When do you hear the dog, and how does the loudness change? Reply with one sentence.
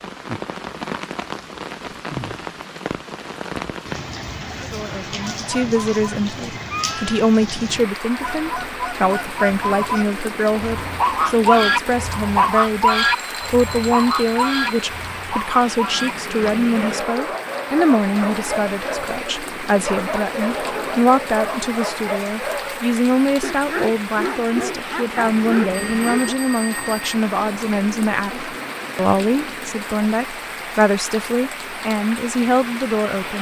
You can hear the dog from 16.7 to 26.4 s, at a steady volume.